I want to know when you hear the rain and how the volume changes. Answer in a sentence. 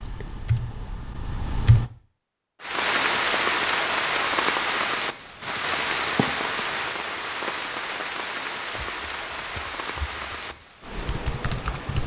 You can hear the rain from 2.6 to 12.0 s, getting quieter.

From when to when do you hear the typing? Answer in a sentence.
You can hear the typing from 0.0 to 1.9 s and from 8.8 to 12.0 s.